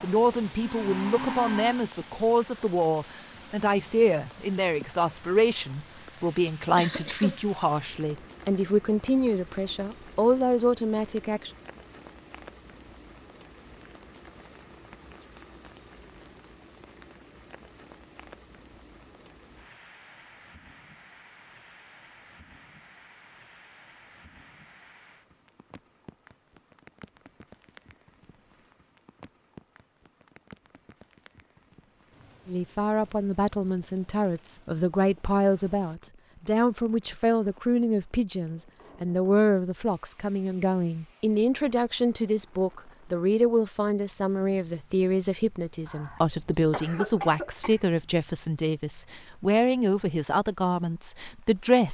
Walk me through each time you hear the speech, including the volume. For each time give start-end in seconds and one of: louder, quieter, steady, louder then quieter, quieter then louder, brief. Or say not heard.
0.0-11.5 steady
32.5-51.8 steady.